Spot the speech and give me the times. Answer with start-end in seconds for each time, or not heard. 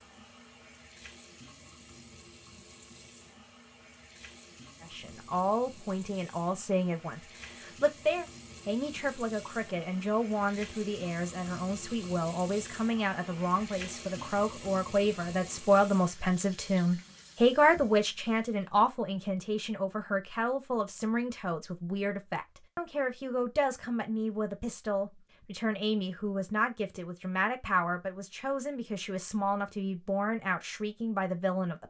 4.8-31.8.